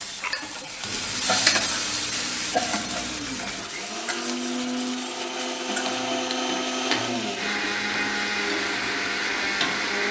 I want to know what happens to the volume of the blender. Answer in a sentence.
The loudness of the blender goes up.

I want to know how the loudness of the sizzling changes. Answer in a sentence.
The volume of the sizzling goes down.